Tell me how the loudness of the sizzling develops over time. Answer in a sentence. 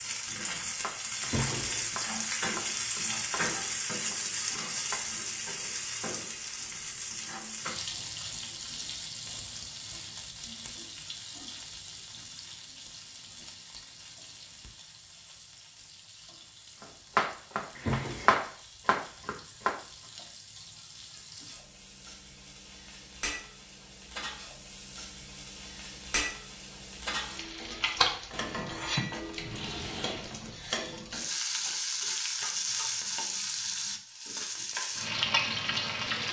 The volume of the sizzling goes down, then up.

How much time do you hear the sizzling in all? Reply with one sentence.
You can hear the sizzling for 36 seconds altogether.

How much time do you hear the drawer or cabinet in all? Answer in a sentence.
You can hear the drawer or cabinet for 3 seconds altogether.